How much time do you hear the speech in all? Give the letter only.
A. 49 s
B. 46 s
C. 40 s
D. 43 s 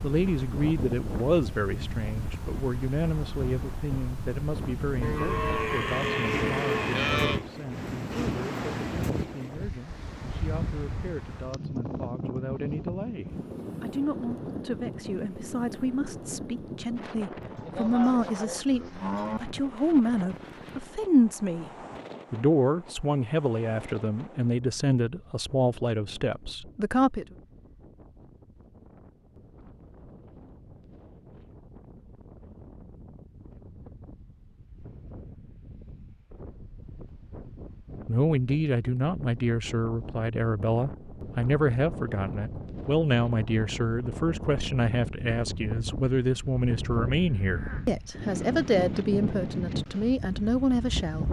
C.